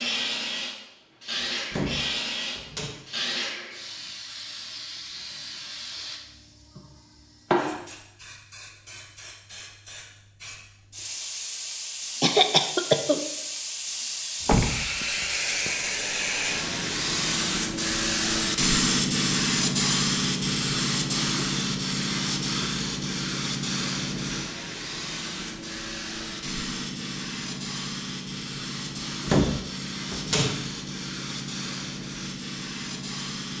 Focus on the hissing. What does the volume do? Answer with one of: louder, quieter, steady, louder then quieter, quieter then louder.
louder then quieter.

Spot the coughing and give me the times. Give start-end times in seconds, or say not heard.
12.2-13.2.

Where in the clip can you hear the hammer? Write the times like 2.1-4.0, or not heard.
not heard.